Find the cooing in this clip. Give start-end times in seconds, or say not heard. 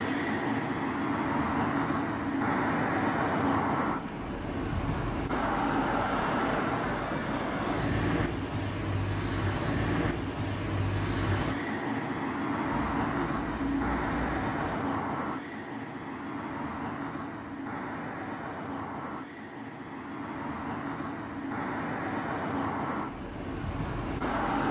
12.7-14.8.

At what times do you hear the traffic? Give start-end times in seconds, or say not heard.
0.0-24.6.